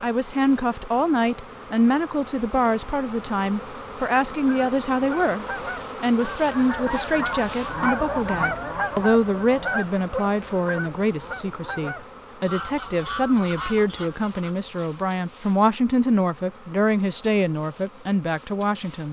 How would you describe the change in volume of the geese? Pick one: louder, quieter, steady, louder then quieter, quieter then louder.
louder then quieter.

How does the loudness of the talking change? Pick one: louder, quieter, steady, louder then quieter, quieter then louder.
steady.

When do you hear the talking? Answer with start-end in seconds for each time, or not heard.
0.0-19.0.